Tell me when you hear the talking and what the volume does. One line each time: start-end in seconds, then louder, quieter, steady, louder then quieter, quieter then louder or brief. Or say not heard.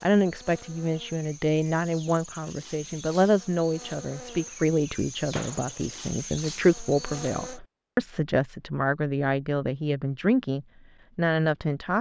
0.0-11.9 steady.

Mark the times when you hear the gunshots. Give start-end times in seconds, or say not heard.
5.3-6.0.